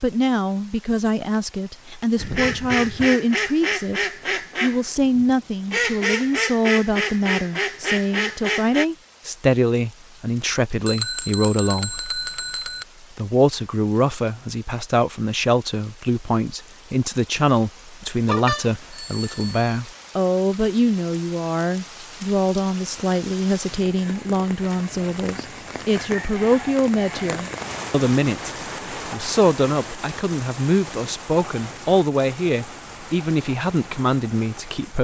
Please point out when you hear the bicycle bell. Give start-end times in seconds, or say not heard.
10.8-12.8, 18.2-19.8.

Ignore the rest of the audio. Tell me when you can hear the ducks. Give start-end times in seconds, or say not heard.
2.1-8.8.